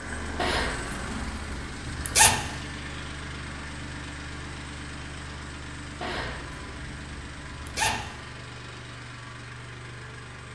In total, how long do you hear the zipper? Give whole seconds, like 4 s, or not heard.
4 s.